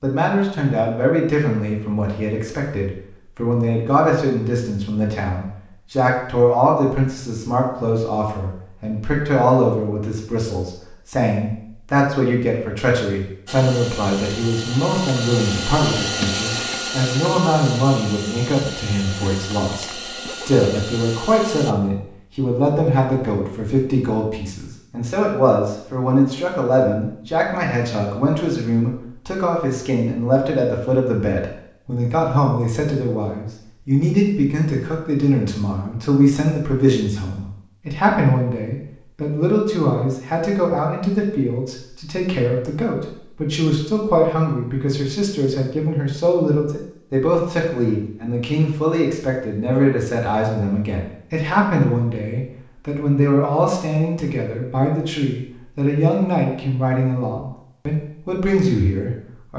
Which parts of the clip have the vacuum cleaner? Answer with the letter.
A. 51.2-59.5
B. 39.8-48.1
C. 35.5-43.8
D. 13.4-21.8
D.